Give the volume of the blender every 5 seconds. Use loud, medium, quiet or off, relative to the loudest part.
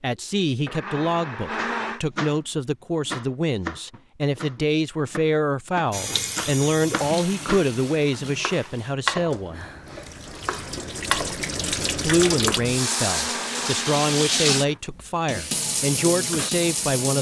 loud, off, loud, off.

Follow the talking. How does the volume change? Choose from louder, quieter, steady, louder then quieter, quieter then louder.
steady.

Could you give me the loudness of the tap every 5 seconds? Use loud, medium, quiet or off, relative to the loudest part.
off, medium, loud, loud.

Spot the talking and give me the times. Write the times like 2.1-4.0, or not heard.
0.0-9.7, 12.1-17.1.